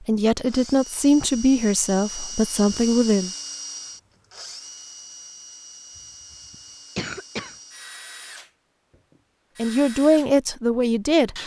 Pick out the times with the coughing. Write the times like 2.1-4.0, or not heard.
6.0-7.5.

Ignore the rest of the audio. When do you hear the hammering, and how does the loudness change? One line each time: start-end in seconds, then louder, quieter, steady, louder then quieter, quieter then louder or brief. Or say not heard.
not heard.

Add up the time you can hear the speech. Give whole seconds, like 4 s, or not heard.
5 s.